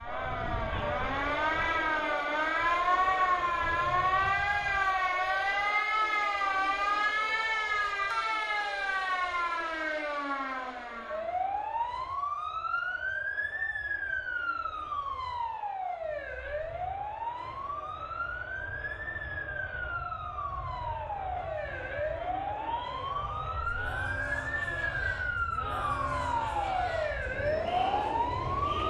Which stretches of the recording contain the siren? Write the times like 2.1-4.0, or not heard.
0.0-28.8.